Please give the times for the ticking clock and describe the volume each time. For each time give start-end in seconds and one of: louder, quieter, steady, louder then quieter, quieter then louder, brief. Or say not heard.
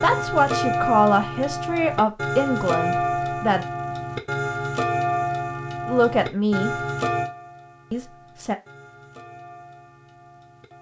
0.0-10.7 quieter.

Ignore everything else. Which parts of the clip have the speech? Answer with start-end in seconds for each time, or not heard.
0.0-3.6, 5.8-6.7, 7.9-8.6.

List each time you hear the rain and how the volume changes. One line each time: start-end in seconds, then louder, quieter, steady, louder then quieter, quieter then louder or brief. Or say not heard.
not heard.